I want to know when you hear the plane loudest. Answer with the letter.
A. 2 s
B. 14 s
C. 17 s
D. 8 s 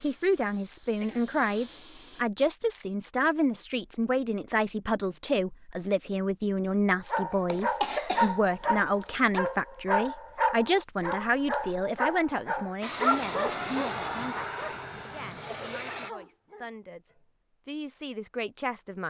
B.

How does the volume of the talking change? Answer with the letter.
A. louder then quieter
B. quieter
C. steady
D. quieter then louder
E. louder
B.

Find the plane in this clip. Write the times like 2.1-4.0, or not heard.
0.0-2.2, 12.8-16.1.